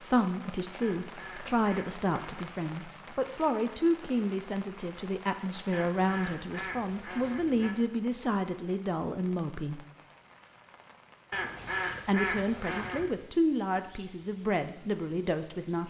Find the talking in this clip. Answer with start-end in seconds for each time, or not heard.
0.0-9.8, 12.1-15.8.